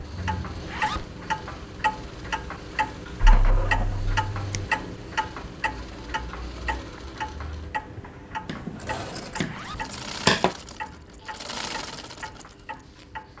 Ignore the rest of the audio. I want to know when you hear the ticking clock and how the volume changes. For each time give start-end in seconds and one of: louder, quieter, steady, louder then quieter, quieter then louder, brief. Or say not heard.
0.0-13.3 quieter.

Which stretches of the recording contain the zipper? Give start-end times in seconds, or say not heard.
0.5-1.1, 9.3-9.8.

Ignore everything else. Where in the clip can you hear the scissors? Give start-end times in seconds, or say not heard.
3.2-4.7, 8.4-10.6.